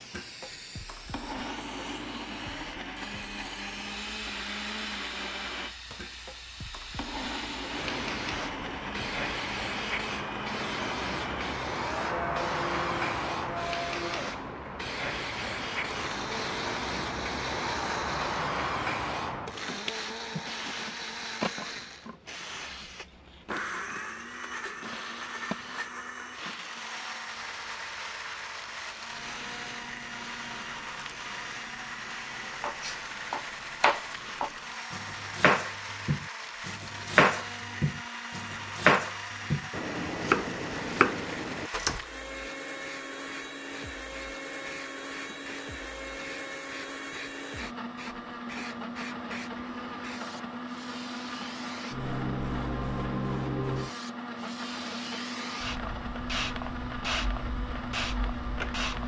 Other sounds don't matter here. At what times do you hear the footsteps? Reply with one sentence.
You can't hear the footsteps here.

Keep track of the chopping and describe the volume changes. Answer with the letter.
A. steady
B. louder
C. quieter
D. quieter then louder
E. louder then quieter
A.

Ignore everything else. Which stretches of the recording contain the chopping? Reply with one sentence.
The chopping can be heard from 32.6 to 42.0 s.